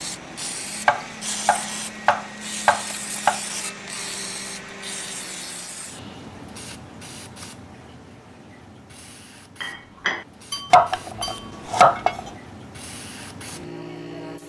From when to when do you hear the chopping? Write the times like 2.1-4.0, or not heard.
0.8-3.4, 10.7-12.3.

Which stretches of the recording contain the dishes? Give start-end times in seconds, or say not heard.
9.6-12.2.